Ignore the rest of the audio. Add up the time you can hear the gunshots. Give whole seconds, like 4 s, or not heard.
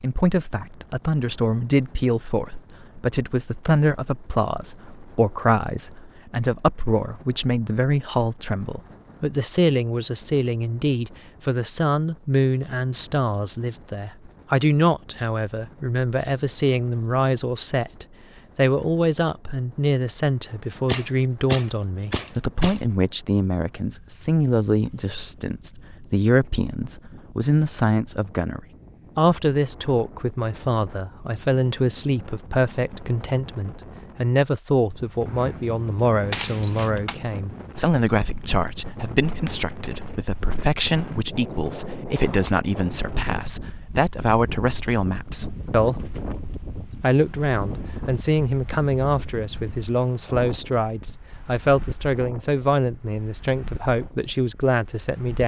4 s.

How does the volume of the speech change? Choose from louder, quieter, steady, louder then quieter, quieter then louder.
steady.